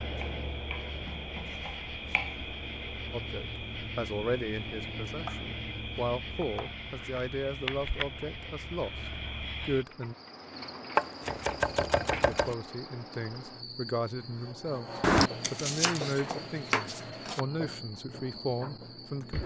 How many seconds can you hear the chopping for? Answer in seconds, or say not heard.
8 s.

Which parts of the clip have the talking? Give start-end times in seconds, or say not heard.
3.1-8.9, 9.6-10.2, 12.1-19.4.